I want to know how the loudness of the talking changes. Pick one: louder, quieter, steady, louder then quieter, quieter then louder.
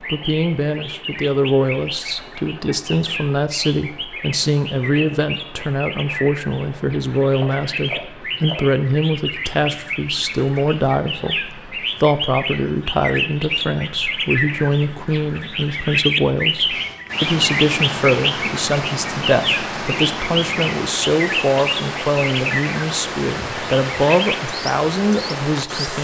steady.